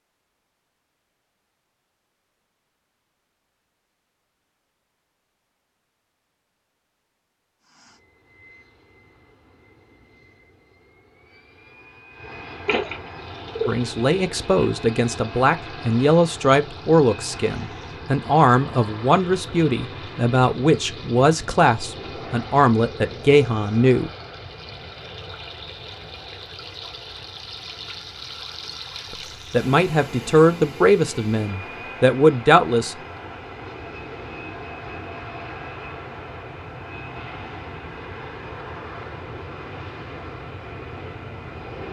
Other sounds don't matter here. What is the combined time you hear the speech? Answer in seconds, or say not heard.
14 s.